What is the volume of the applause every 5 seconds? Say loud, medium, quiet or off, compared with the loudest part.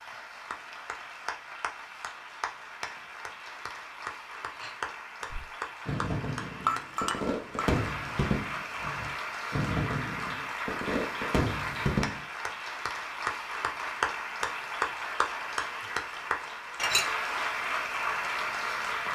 medium, medium, loud, loud.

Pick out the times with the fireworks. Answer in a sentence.
The fireworks can be heard from 5.3 to 12.2 s.